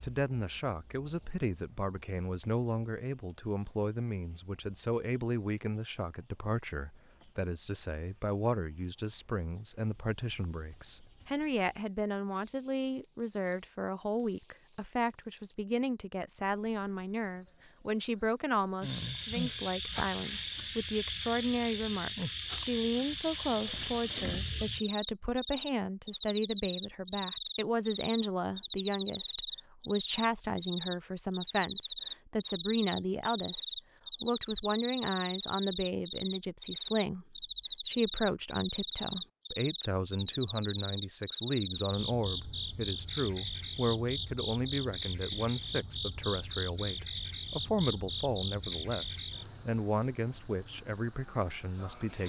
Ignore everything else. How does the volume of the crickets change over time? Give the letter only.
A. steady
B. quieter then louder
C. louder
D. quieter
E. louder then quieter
C.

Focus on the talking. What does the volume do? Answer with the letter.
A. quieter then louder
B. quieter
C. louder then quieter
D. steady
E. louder
D.